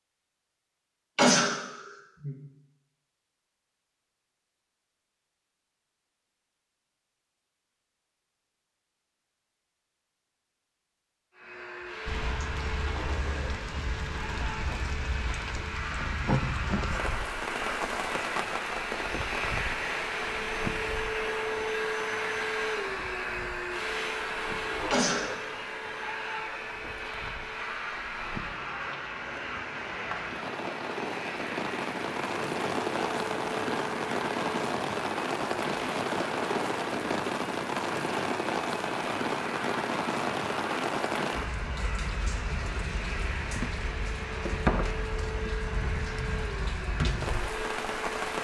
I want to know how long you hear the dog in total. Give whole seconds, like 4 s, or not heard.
not heard.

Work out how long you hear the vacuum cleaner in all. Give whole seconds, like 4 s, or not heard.
37 s.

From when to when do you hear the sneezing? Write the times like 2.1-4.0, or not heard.
1.1-2.4, 24.9-25.5.